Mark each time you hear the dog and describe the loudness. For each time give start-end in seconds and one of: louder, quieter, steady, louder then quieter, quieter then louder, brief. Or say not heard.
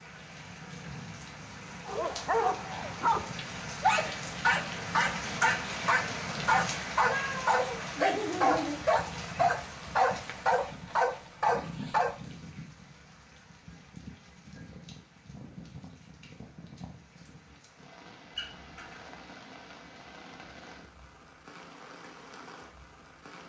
1.9-12.2 steady.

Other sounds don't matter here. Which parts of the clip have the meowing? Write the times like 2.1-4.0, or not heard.
7.1-8.8, 18.4-19.0.